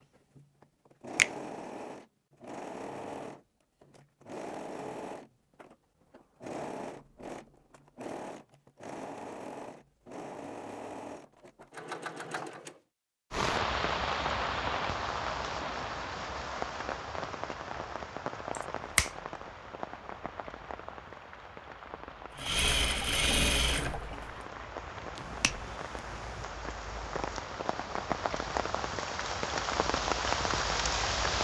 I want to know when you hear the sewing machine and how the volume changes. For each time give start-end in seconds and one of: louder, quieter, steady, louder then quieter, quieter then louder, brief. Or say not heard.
0.0-12.8 steady
22.4-24.4 brief.